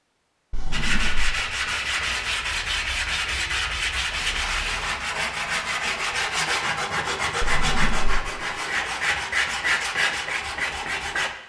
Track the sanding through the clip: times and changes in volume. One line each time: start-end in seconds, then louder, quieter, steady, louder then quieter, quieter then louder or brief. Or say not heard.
0.7-11.3 steady.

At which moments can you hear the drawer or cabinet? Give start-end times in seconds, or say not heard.
0.5-1.4, 7.4-8.2.